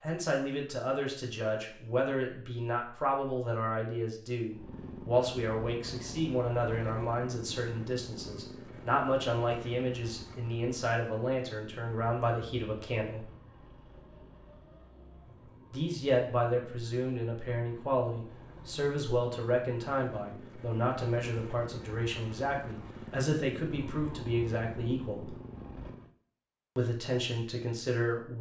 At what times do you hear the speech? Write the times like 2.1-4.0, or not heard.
0.0-13.2, 15.7-25.4, 26.8-28.3.